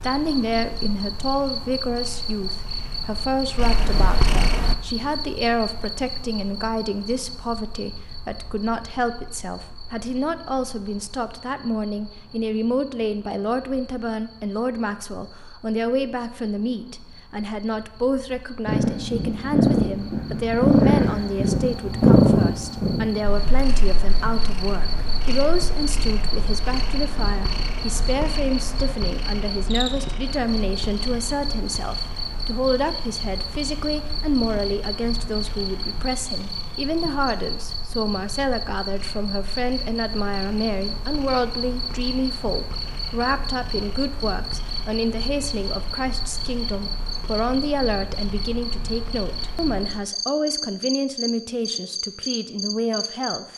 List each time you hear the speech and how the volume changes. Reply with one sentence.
You can hear the speech from 0.0 to 53.5 s, at a steady volume.